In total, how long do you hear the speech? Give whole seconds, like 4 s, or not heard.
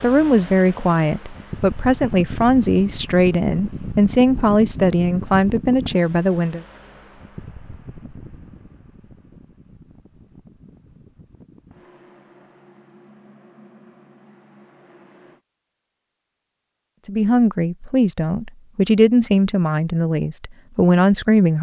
11 s.